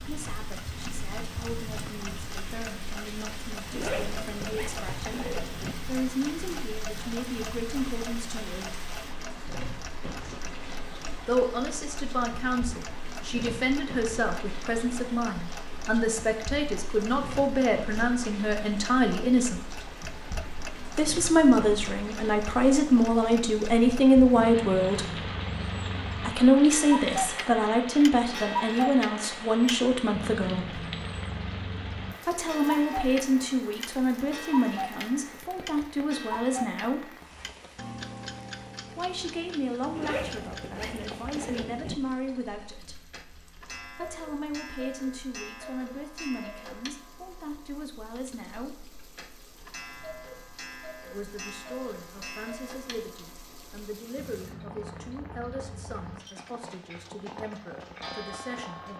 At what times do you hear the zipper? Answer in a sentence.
You can hear the zipper from 3.7 to 5.8 s and from 40.0 to 42.0 s.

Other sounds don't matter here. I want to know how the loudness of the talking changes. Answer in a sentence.
The loudness of the talking goes up, then down.